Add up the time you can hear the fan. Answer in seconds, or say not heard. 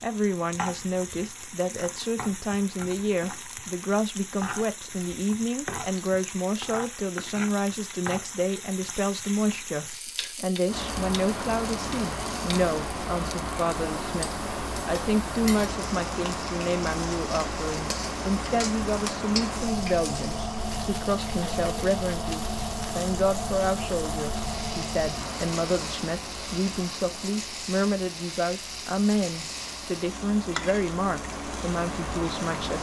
22 s.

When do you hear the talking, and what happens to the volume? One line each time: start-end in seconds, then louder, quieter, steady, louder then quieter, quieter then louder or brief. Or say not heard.
0.0-32.7 steady.